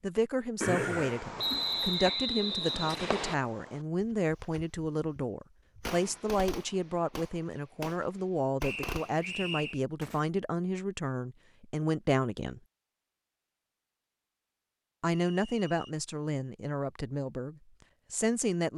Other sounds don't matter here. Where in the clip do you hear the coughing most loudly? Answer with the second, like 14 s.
1 s.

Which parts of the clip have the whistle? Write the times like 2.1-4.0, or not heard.
1.4-3.4, 8.6-9.8, 15.1-15.9.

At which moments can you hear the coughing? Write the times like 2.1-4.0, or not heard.
0.6-2.2.